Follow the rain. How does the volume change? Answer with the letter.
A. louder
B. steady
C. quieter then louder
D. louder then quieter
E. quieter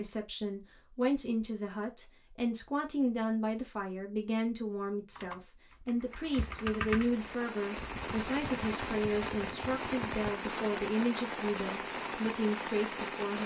A.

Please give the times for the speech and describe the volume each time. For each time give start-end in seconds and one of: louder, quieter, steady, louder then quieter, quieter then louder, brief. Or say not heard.
0.0-13.4 steady.